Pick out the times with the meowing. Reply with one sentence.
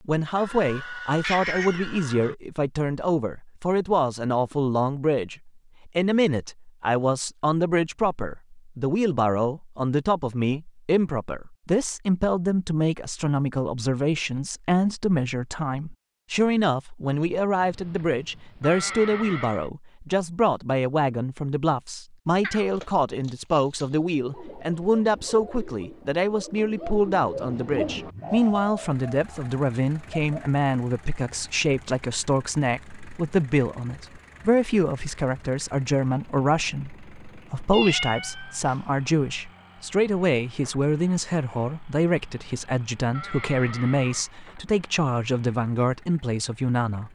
You can hear the meowing from 1.2 to 1.9 s, from 22.4 to 23.9 s and from 37.7 to 38.8 s.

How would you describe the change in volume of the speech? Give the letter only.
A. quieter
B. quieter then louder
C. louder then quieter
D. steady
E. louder
D.